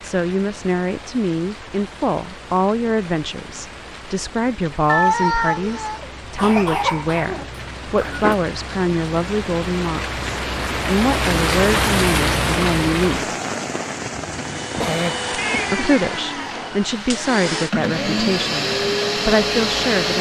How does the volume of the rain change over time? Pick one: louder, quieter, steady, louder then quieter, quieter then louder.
louder then quieter.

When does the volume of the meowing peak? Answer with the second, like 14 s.
5 s.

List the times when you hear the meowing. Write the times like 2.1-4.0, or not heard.
4.8-6.1, 15.3-16.6.